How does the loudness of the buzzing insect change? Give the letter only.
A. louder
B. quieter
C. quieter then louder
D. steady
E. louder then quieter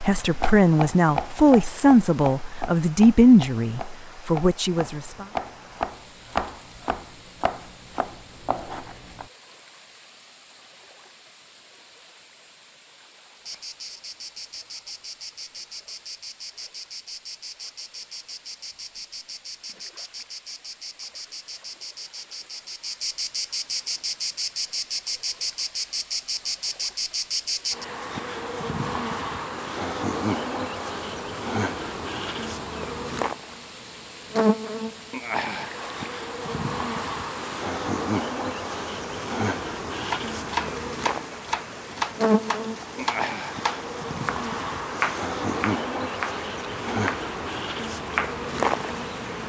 A.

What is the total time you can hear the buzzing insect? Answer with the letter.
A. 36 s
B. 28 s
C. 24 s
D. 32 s
A.